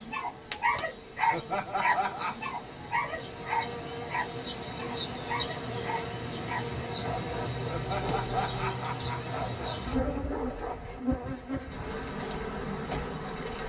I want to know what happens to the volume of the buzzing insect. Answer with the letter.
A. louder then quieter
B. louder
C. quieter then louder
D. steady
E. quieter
B.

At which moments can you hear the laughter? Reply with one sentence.
The laughter can be heard from 1.3 to 2.4 s and from 7.7 to 10.2 s.